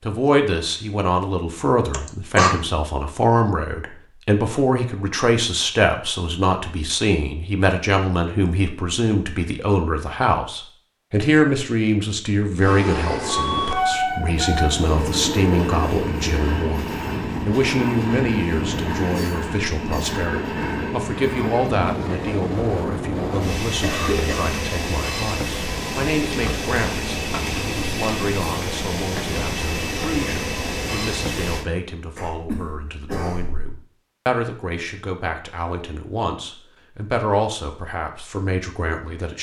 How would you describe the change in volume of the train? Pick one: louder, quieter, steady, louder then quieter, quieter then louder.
steady.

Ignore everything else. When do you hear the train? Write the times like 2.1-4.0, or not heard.
12.6-31.6.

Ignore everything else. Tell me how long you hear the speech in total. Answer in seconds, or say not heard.
39 s.